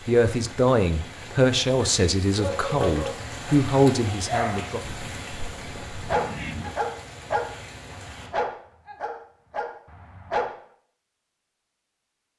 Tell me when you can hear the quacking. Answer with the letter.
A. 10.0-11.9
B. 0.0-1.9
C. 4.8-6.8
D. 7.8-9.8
C.